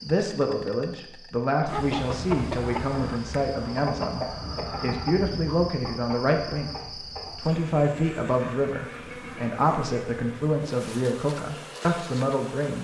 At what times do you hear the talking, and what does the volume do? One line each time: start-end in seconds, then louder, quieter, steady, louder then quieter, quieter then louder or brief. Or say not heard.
0.0-12.7 steady.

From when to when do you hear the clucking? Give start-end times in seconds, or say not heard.
1.6-9.5.